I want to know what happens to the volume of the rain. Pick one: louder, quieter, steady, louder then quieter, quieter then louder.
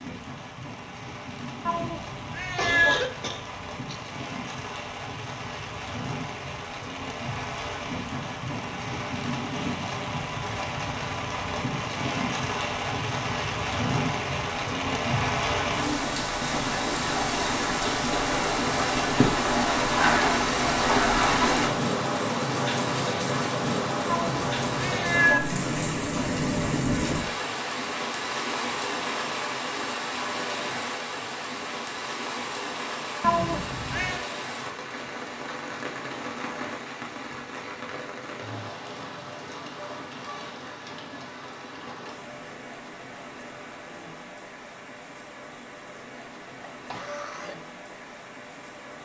louder then quieter.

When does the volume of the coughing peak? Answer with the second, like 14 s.
3 s.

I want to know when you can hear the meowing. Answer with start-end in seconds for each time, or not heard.
1.6-3.0, 24.1-25.4, 33.2-34.2.